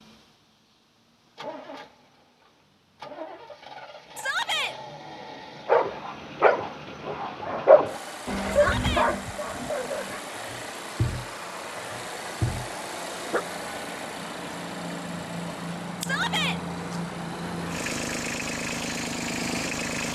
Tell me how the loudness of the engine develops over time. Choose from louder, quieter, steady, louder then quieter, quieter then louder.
louder.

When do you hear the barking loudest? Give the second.
8 s.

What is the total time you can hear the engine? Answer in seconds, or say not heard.
20 s.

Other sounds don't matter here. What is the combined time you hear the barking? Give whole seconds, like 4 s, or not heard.
8 s.